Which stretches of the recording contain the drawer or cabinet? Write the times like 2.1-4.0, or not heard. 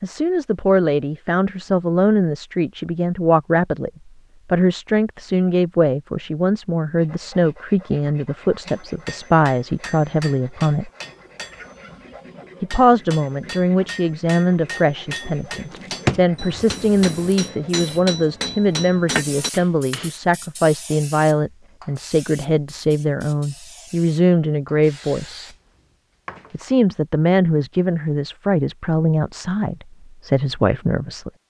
15.7-16.2.